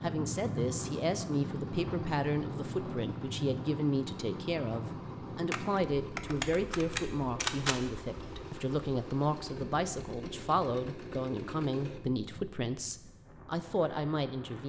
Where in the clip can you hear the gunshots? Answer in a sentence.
You can hear the gunshots from 5.5 to 7.8 s.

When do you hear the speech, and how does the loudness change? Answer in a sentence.
The speech can be heard from 0.0 to 14.6 s, at a steady volume.